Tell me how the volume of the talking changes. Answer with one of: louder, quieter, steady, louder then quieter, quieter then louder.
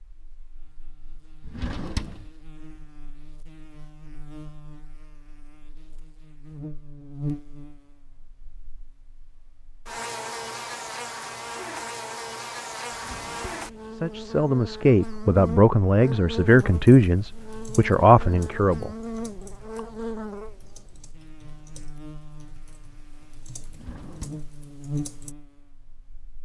steady.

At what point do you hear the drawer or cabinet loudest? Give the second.
2 s.